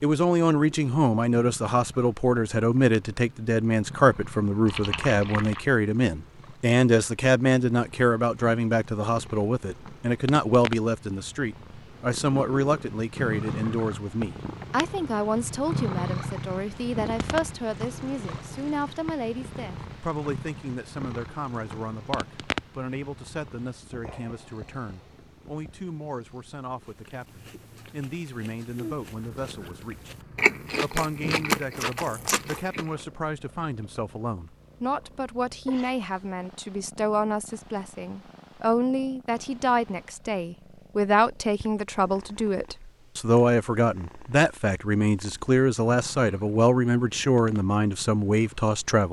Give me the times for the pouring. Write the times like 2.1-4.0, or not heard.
4.7-5.7.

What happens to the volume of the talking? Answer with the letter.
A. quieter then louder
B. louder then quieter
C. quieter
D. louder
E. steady
A.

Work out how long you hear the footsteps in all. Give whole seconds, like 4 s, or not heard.
not heard.